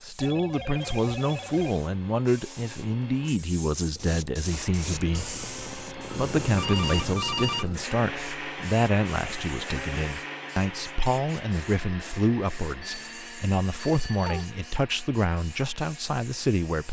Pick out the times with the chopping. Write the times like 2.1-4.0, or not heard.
not heard.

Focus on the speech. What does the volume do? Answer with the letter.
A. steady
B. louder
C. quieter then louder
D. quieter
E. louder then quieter
A.